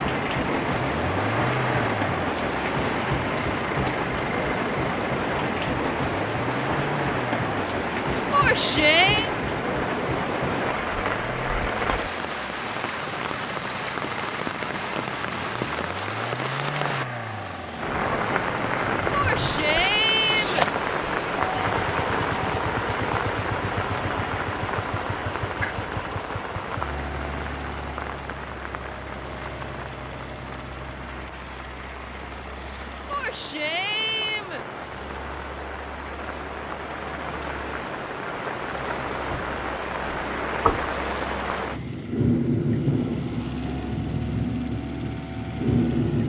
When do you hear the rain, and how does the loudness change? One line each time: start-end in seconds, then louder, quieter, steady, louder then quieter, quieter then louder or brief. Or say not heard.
0.0-46.2 quieter then louder.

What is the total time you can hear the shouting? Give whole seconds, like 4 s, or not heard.
4 s.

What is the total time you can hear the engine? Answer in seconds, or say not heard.
46 s.